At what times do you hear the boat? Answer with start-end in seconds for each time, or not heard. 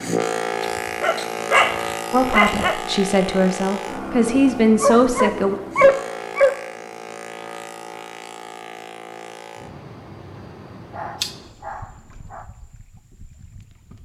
0.0-14.0.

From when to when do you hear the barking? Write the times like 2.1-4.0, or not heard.
0.6-2.8, 4.8-6.5, 10.9-11.8.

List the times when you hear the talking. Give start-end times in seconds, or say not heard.
2.1-5.5.